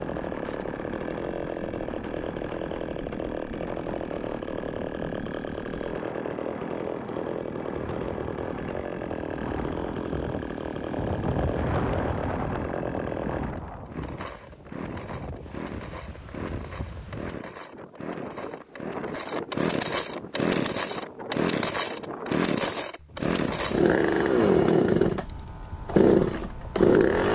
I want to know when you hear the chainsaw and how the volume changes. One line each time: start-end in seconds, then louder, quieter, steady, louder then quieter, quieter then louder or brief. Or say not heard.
0.0-27.2 louder.